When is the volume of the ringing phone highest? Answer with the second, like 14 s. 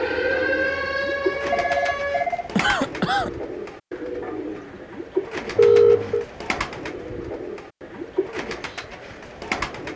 6 s.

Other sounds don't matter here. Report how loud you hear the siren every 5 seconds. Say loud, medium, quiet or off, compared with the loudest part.
loud, off.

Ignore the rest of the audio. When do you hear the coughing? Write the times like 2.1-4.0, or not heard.
2.5-3.3.